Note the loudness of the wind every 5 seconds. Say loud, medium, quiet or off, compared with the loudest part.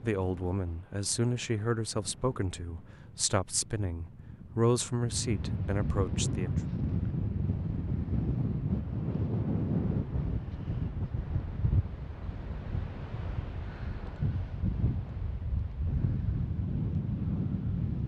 quiet, loud, medium, loud.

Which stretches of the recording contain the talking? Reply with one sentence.
You can hear the talking from 0.0 to 6.6 s.